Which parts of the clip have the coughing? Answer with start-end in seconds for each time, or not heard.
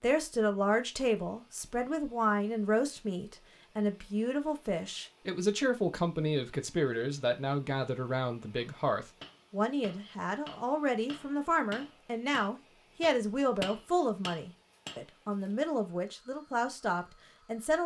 not heard.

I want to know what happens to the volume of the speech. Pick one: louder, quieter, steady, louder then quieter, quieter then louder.
steady.